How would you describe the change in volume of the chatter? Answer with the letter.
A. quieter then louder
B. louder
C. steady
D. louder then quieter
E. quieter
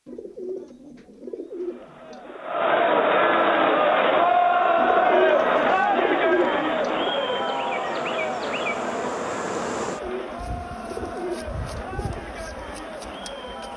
E.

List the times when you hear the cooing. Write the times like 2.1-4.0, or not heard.
0.1-2.5, 4.8-7.1, 9.8-12.3.